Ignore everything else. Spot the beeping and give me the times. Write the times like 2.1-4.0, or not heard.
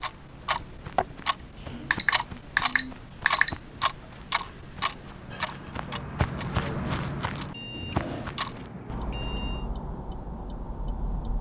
1.9-3.5, 7.5-9.7.